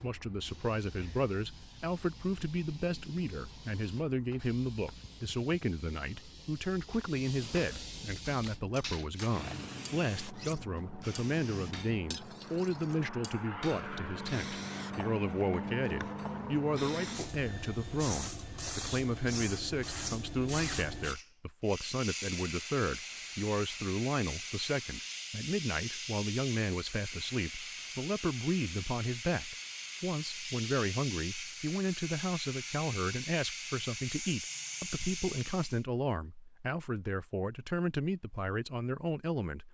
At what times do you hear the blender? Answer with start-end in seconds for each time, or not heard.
not heard.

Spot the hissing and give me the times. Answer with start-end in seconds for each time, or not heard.
0.0-35.9.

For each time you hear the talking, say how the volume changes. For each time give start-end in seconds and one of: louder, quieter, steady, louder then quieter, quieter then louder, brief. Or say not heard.
0.0-39.7 steady.